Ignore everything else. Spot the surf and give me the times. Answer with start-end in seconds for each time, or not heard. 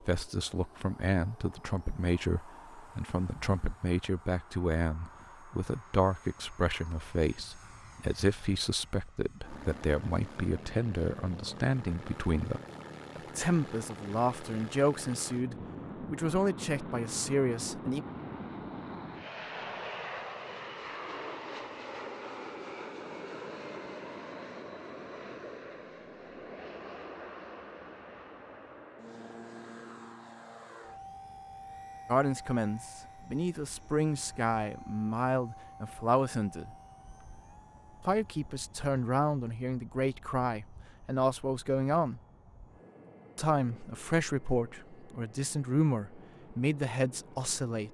not heard.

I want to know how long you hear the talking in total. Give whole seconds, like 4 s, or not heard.
31 s.